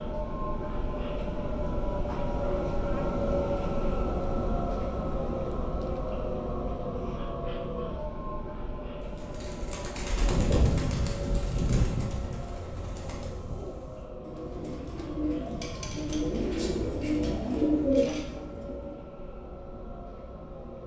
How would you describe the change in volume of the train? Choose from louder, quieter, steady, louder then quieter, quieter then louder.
quieter.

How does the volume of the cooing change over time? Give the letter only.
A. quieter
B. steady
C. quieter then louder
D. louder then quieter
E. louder
C.